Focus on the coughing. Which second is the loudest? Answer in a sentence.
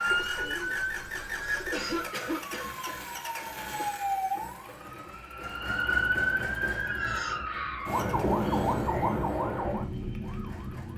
The volume of the coughing peaks at 2 seconds.